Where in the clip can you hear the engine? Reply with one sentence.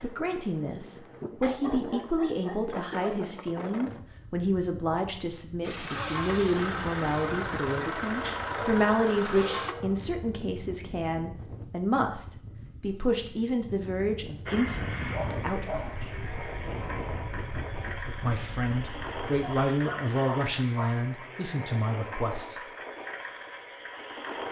The engine can be heard from 5.6 to 9.8 s and from 14.4 to 24.4 s.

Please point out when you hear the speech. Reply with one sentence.
You can hear the speech from 0.0 to 16.1 s and from 18.2 to 22.6 s.